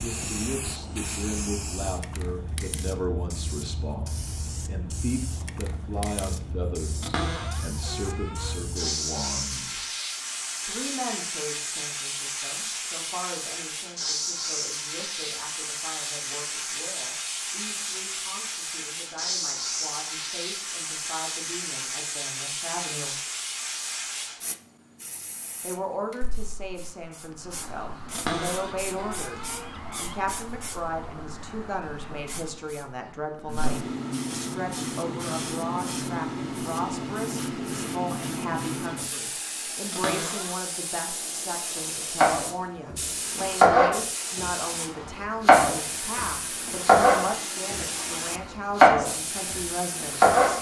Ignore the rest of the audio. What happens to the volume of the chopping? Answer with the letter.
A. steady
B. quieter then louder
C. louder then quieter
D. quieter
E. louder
B.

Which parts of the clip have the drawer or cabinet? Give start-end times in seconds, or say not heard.
7.0-8.6, 28.1-30.1, 39.9-40.5.